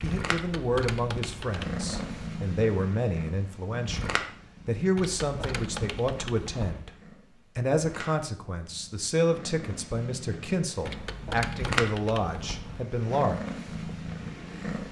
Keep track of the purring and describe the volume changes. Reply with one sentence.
The loudness of the purring goes down, then up.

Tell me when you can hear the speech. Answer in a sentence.
You can hear the speech from 0.0 to 7.0 s and from 7.5 to 13.4 s.